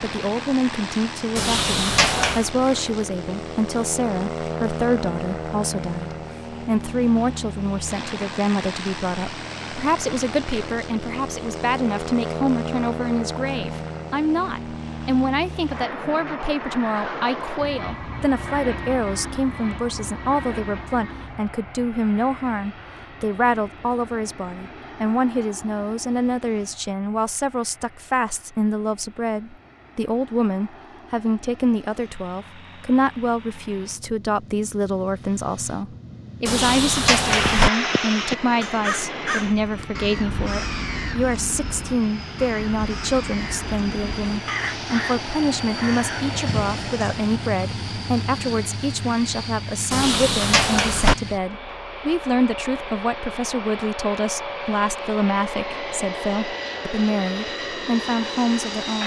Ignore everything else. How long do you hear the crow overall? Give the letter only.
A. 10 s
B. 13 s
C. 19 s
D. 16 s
A.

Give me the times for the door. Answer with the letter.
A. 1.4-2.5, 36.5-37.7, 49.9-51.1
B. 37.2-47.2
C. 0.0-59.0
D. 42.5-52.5
A.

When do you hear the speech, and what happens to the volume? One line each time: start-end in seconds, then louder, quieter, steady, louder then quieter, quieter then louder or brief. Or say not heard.
0.0-59.0 steady.